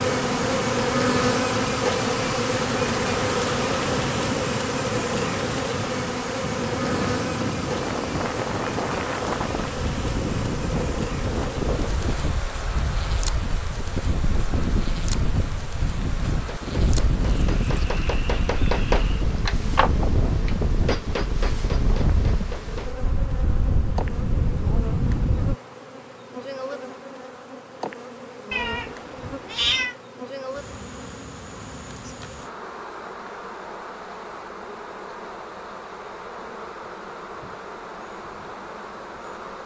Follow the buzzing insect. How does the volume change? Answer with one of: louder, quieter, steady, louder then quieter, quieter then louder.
quieter.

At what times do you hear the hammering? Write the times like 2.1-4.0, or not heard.
16.3-22.9.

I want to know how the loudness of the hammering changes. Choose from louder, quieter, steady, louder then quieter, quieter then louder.
louder then quieter.